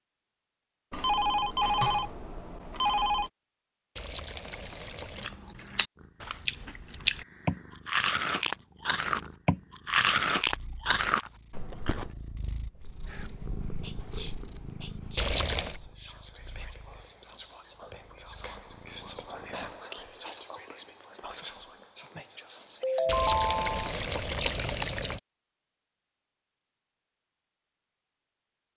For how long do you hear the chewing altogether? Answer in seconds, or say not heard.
7 s.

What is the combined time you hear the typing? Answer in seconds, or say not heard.
not heard.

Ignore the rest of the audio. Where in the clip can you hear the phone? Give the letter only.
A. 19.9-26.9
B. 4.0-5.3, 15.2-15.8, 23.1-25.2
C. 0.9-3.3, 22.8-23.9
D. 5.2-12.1
C.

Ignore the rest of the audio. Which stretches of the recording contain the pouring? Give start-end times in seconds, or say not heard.
4.0-5.3, 15.2-15.8, 23.1-25.2.